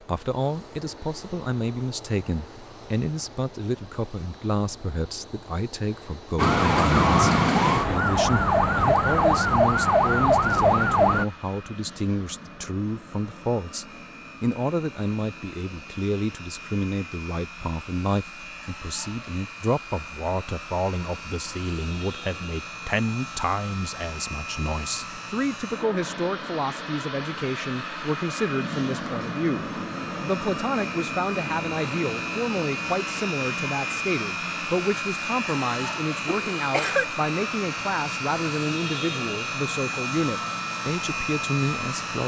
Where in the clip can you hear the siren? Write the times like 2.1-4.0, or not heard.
6.3-11.2.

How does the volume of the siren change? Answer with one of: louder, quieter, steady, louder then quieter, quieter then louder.
steady.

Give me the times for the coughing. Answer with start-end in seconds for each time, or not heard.
36.2-37.0.